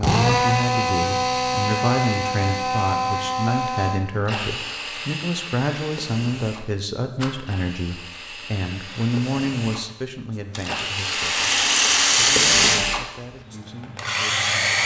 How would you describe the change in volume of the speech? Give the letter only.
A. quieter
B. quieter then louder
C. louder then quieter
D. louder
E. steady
A.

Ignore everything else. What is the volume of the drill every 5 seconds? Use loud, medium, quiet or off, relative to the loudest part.
loud, quiet, loud.